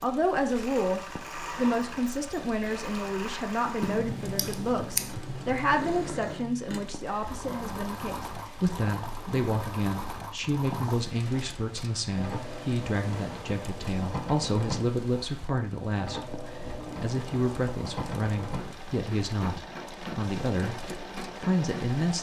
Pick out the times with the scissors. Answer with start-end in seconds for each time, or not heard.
3.8-5.2.